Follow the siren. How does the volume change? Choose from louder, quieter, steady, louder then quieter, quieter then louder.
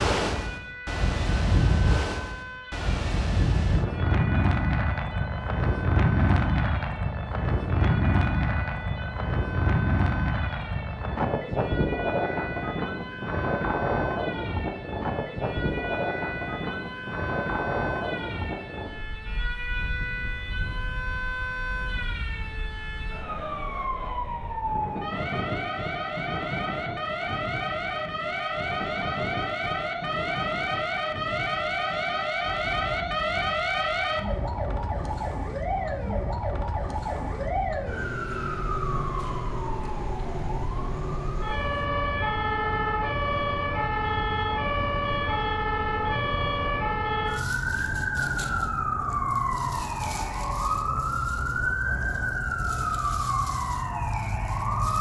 louder.